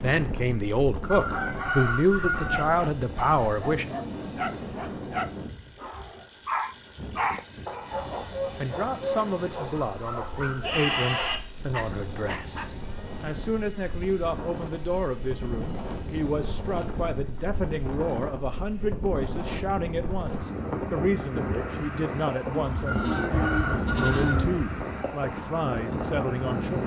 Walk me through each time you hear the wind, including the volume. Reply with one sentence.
You can hear the wind from 0.0 to 26.8 s, getting quieter then louder.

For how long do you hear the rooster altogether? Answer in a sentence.
You can hear the rooster for 3 seconds altogether.